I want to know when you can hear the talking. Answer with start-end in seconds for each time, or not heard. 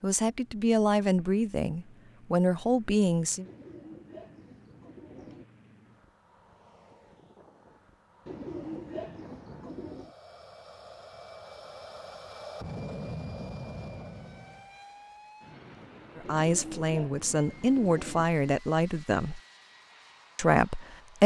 0.0-3.5, 16.1-19.4, 20.4-21.2.